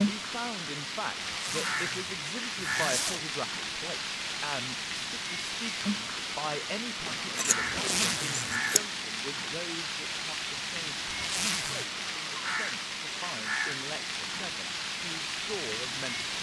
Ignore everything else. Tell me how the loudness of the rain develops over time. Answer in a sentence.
The volume of the rain stays about the same.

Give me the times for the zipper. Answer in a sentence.
The zipper can be heard from 1.3 to 3.2 s, from 7.6 to 8.6 s and from 11.1 to 11.8 s.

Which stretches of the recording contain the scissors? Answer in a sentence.
You can hear the scissors from 7.0 to 8.8 s.